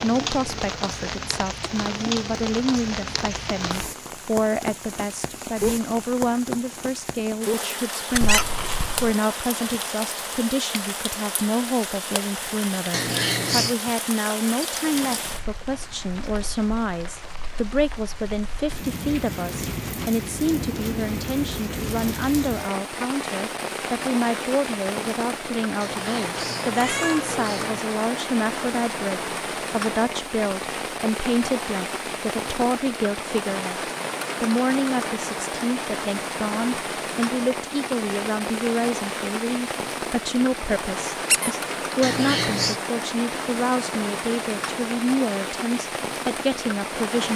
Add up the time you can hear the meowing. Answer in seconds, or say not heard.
4 s.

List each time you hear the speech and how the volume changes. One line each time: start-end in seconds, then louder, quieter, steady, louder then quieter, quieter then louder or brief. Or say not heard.
0.0-47.3 steady.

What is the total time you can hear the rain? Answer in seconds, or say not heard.
47 s.